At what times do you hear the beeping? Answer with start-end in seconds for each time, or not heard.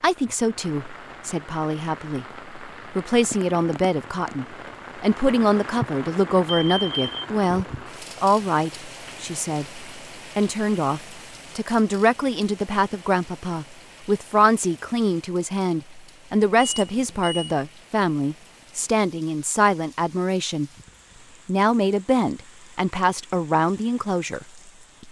6.5-7.2, 16.6-17.4.